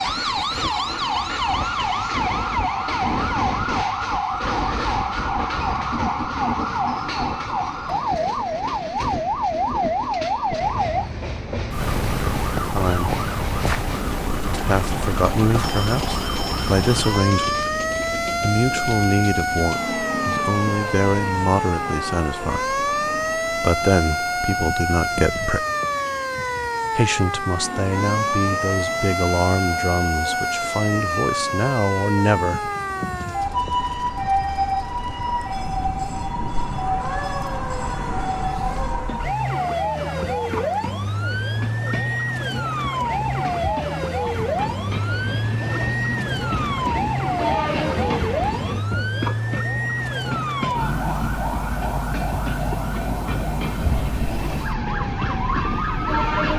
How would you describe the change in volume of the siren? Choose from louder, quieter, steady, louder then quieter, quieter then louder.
steady.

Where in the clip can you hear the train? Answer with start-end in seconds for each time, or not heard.
0.0-56.5.